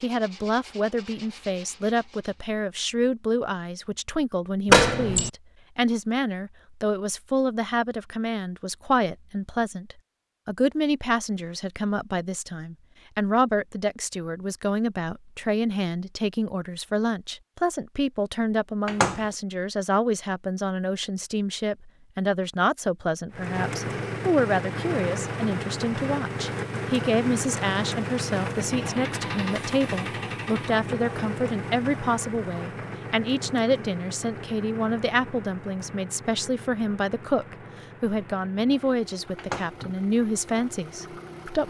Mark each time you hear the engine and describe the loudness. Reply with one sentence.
You can hear the engine from 23.3 to 41.6 s, getting quieter.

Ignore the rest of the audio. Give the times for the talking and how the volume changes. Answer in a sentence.
The talking can be heard from 0.0 to 41.6 s, at a steady volume.